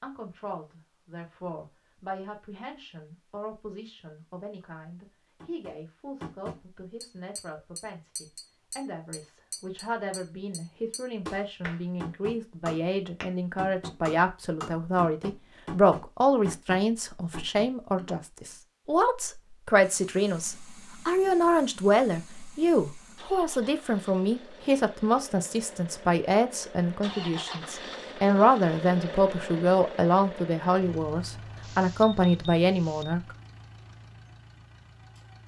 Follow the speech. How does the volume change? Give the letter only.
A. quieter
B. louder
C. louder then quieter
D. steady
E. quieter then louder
B.